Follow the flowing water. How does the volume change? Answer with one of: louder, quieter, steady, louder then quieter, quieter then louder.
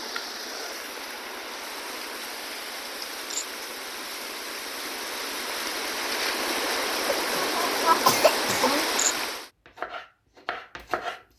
louder.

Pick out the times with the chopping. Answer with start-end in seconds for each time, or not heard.
8.9-11.2.